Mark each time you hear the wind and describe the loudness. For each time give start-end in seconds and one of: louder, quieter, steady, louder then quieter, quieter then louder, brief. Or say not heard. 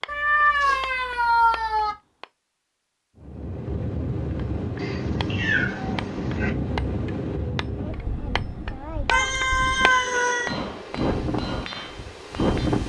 3.2-12.8 quieter then louder.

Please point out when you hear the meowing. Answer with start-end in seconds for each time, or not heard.
0.1-1.9, 4.8-6.5, 9.1-10.6.